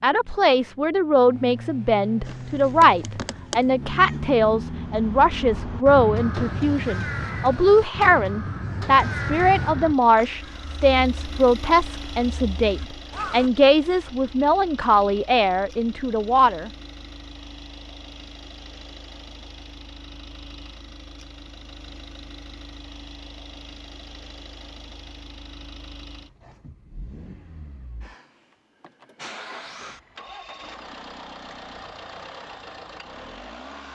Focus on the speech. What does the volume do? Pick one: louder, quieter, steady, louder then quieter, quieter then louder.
steady.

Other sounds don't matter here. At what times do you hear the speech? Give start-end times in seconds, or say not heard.
0.0-16.7.